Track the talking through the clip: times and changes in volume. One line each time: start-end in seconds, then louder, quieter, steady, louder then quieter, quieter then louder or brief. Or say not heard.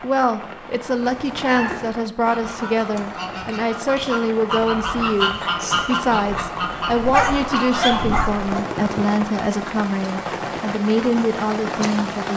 0.0-12.3 steady.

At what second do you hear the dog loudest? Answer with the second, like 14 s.
7 s.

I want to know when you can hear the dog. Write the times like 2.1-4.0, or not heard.
7.0-8.5.